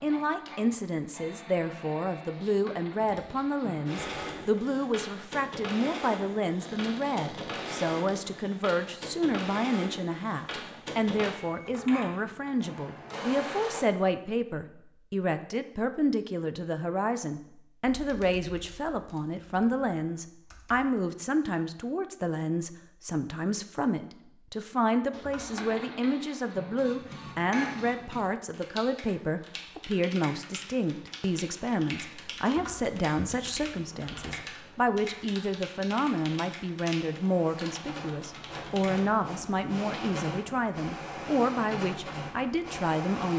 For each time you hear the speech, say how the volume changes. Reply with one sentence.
The speech can be heard from 0.0 to 43.3 s, at a steady volume.